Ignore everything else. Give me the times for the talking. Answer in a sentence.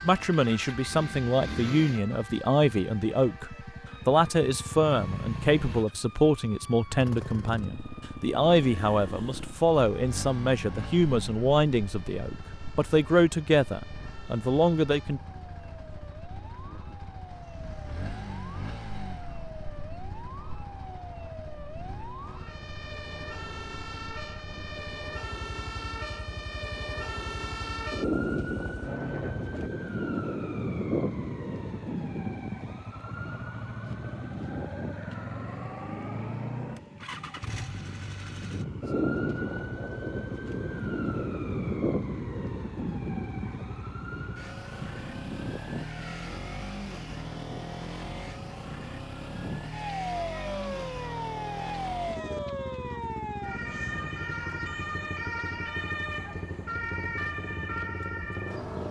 You can hear the talking from 0.0 to 15.2 s.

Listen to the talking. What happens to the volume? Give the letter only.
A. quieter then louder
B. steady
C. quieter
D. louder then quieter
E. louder
B.